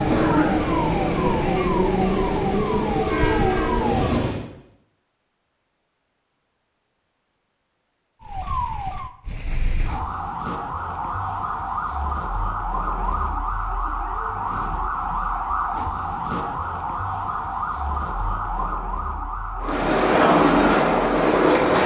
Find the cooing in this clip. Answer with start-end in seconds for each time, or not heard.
not heard.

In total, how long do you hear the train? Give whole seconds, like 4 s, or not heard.
7 s.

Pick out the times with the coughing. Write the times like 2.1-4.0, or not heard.
0.1-0.7.